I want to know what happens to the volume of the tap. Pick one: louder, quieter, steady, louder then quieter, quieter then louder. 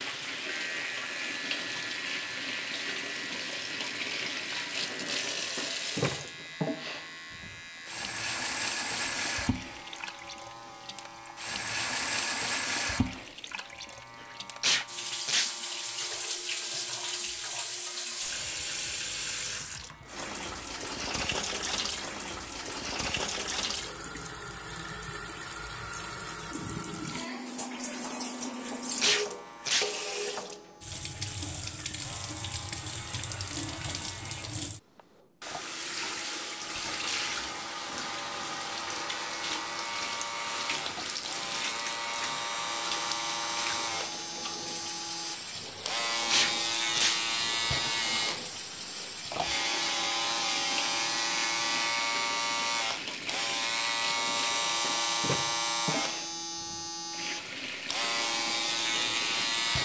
steady.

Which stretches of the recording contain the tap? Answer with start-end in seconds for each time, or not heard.
0.0-59.8.